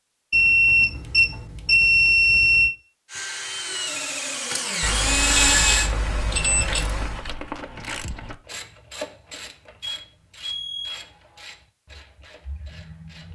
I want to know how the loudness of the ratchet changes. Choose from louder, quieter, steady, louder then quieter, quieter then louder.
quieter.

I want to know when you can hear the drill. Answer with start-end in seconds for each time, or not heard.
3.0-5.9.